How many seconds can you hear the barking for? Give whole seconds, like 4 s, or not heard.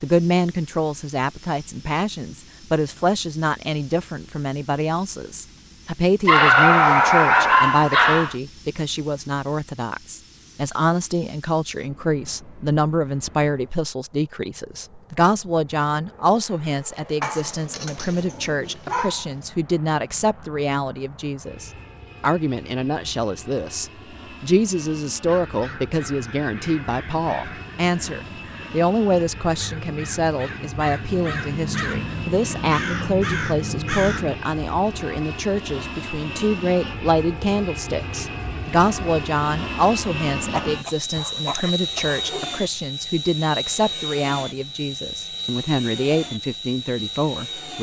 6 s.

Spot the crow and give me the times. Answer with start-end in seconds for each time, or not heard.
25.2-34.4.